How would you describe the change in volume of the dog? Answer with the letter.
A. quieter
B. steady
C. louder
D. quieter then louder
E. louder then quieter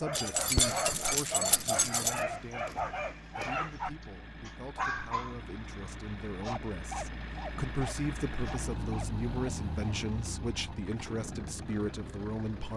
A.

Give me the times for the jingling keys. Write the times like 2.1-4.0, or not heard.
0.1-2.2.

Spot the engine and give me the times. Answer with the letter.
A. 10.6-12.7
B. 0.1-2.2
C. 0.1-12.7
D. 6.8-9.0
C.